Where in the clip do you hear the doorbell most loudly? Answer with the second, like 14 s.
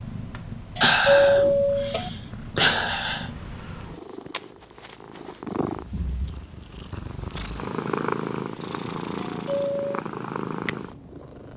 1 s.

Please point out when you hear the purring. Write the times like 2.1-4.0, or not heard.
0.0-11.5.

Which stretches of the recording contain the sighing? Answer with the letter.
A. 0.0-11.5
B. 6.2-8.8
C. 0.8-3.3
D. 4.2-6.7
C.